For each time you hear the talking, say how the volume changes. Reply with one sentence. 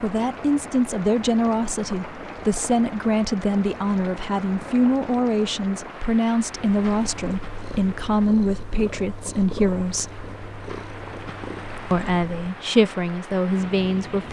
You can hear the talking from 0.0 to 10.2 s, at a steady volume; and briefly from 11.9 to 14.2 s.